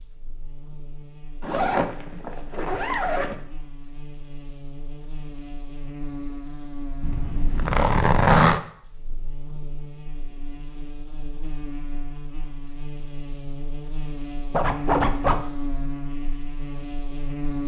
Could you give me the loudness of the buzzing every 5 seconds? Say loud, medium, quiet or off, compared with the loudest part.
quiet, medium, medium, loud.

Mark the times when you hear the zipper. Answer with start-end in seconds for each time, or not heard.
1.4-3.4, 7.0-8.6, 14.5-15.4.